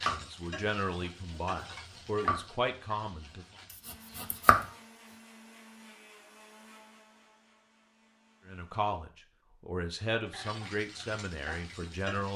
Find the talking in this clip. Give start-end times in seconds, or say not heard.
0.0-3.5, 8.4-12.3.